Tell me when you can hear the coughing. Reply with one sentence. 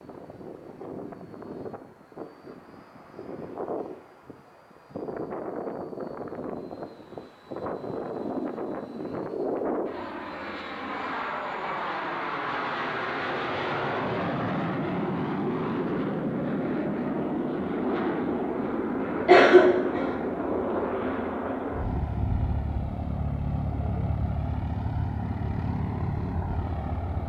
You can hear the coughing from 19.2 to 20.1 s.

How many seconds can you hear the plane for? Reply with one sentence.
You can hear the plane for 27 seconds altogether.